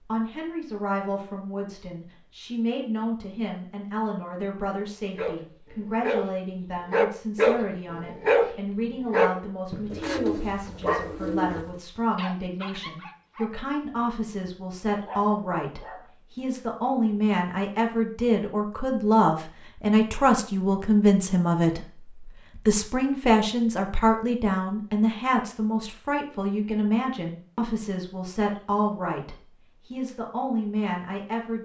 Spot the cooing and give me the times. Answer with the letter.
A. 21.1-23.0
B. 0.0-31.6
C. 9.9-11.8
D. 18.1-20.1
C.